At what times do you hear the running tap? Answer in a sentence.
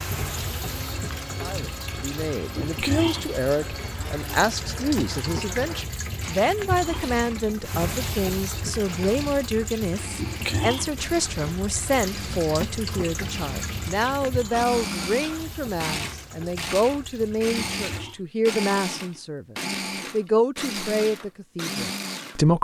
You can hear the running tap from 0.0 to 18.2 s.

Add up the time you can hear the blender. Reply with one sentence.
You can hear the blender for 22 seconds altogether.